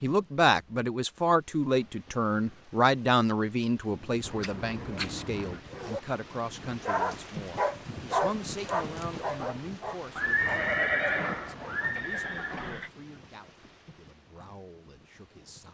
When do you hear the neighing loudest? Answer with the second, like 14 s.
11 s.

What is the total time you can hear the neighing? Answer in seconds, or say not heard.
4 s.